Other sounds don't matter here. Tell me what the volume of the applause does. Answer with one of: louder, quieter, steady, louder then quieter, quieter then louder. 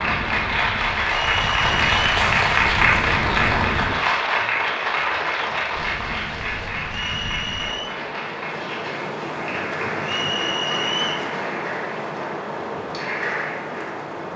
quieter.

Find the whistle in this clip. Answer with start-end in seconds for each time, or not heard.
1.2-2.1, 6.8-8.0, 10.1-11.3.